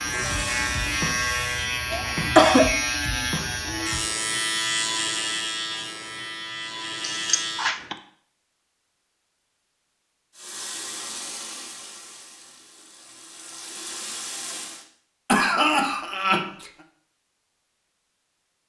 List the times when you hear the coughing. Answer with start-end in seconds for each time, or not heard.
1.9-2.8, 7.0-8.0, 15.2-16.7.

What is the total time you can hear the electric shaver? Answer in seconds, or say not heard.
8 s.